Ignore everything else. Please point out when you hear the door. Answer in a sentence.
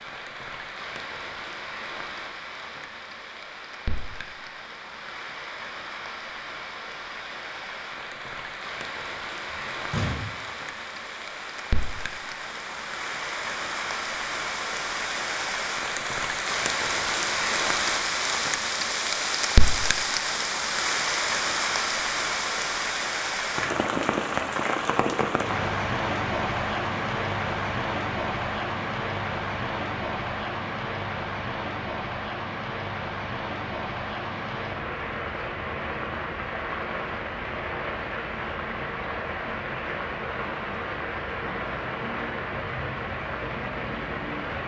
The door can be heard from 9.5 to 10.3 s.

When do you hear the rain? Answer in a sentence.
You can hear the rain from 0.0 to 44.6 s.